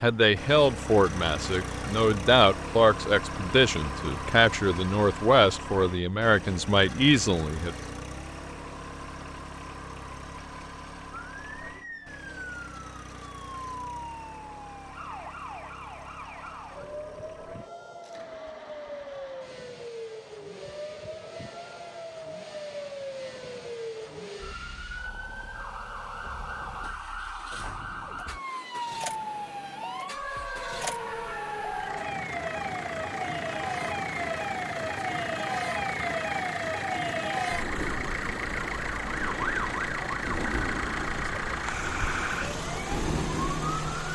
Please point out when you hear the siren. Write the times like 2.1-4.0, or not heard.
11.2-44.1.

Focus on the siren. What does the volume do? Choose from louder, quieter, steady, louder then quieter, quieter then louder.
louder.